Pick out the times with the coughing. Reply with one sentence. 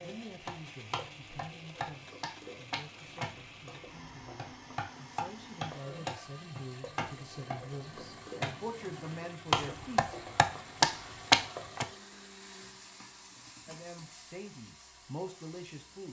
The coughing can't be heard in this clip.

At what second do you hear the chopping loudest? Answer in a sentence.
The loudest moment of the chopping is at 11 seconds.